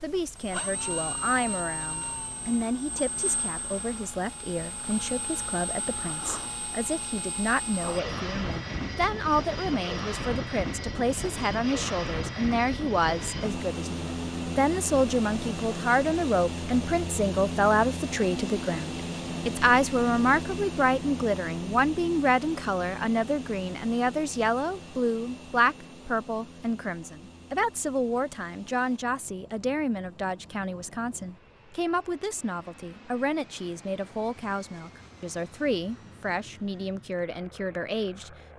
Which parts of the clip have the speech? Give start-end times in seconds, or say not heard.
0.0-38.4.